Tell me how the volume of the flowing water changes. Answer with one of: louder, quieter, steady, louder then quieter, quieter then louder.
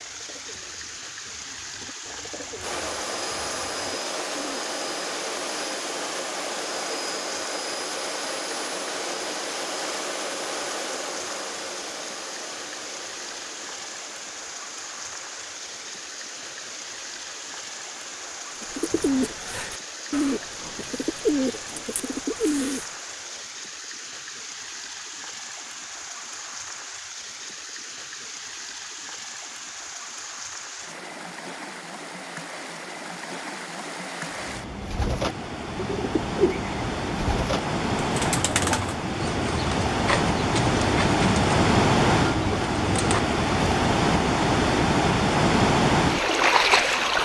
louder.